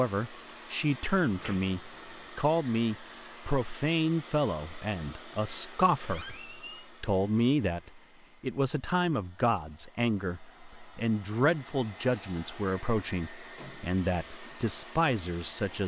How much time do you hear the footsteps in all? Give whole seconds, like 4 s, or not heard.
not heard.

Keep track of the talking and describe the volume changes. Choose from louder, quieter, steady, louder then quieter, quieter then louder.
steady.